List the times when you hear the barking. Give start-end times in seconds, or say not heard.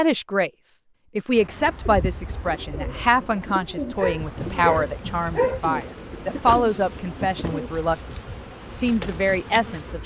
4.0-5.6.